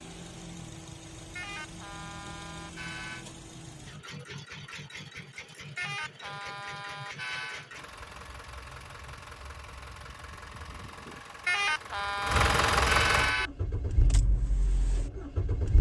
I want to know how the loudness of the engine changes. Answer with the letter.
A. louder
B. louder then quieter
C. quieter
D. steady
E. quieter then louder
A.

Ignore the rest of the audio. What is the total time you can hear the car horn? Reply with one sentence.
The car horn can be heard for 6 seconds in total.